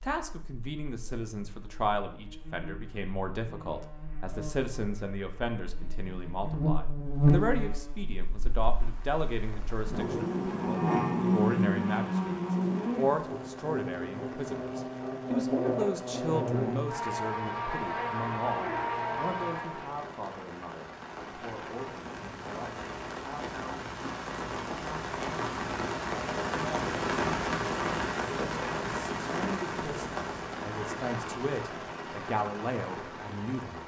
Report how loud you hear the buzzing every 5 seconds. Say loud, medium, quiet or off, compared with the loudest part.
quiet, loud, loud, loud, off, off, off.